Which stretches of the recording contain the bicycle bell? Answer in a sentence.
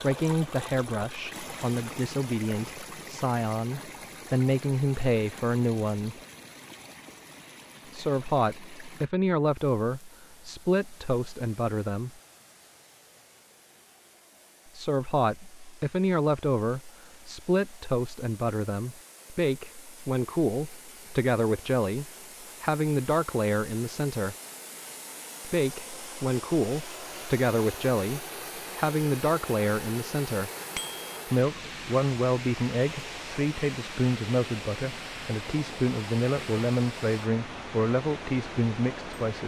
You can hear the bicycle bell from 30.8 to 31.2 s.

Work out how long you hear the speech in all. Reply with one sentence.
You can hear the speech for 33 seconds altogether.